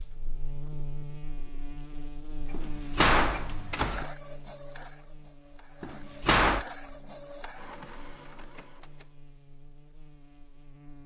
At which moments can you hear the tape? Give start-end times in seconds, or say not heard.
not heard.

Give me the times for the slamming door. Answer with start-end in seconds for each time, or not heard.
2.5-4.0, 5.8-6.7.